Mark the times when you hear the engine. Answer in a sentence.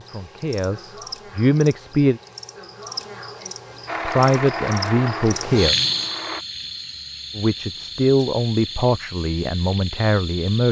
You can hear the engine from 3.9 to 6.5 s.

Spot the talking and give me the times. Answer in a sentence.
The talking can be heard from 0.0 to 2.2 s, from 4.0 to 5.8 s and from 7.3 to 10.6 s.